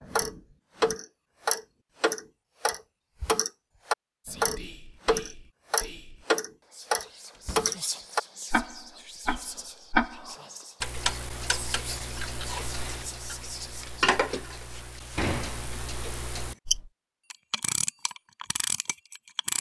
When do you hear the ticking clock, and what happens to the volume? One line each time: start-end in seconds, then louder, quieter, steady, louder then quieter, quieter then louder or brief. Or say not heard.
0.0-19.5 quieter.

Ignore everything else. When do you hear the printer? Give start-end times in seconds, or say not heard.
not heard.